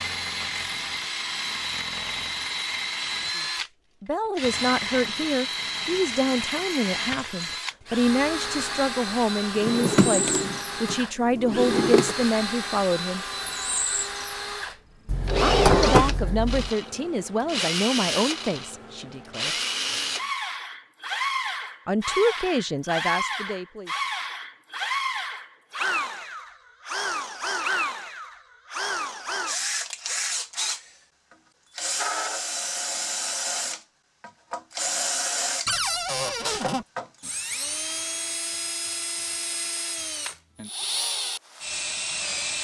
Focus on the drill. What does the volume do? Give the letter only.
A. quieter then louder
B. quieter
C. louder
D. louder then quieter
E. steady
E.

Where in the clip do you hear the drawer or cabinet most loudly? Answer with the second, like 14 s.
16 s.